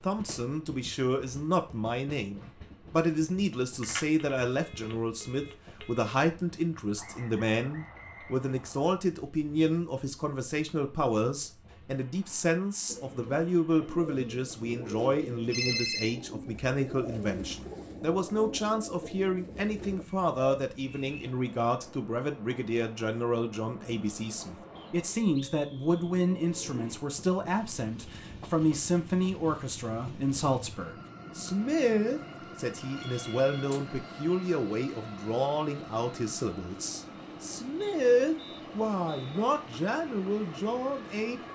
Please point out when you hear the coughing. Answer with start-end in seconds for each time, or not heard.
not heard.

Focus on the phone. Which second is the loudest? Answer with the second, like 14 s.
16 s.